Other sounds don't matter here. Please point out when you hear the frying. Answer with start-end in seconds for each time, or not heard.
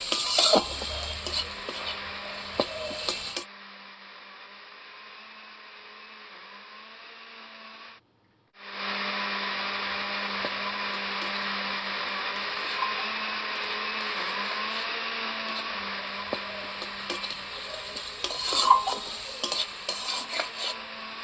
0.0-3.5, 9.8-21.1.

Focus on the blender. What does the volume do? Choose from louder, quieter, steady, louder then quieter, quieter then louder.
louder then quieter.